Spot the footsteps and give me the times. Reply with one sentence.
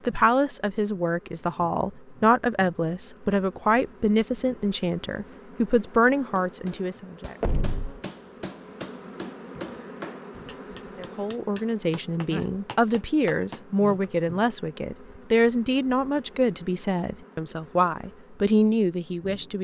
The footsteps can't be heard in this clip.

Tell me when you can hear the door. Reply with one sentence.
The door can be heard from 7.4 to 8.0 s.